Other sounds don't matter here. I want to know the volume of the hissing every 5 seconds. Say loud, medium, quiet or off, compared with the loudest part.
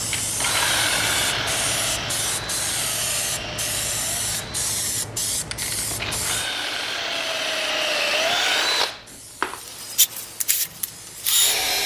loud, medium, quiet.